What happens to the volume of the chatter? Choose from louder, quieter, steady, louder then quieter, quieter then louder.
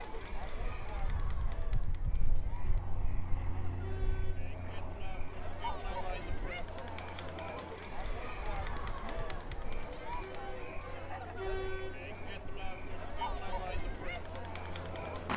louder.